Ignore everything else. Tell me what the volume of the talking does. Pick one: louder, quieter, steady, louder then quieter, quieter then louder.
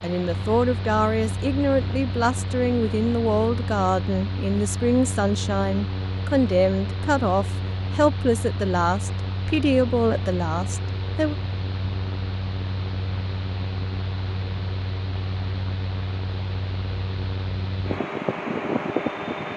steady.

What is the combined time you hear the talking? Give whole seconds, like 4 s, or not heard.
11 s.